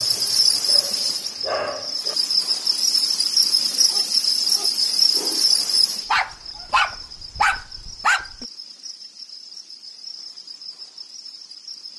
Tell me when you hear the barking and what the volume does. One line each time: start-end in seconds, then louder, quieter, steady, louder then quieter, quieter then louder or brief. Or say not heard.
0.0-2.1 brief
3.8-8.4 louder.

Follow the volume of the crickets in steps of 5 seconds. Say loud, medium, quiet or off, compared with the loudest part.
loud, medium, quiet.